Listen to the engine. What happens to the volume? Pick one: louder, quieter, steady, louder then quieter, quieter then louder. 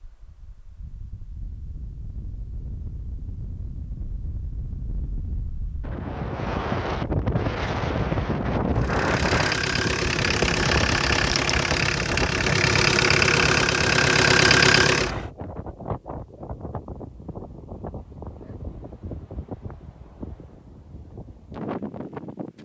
louder.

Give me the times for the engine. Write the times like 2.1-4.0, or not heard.
8.8-15.2.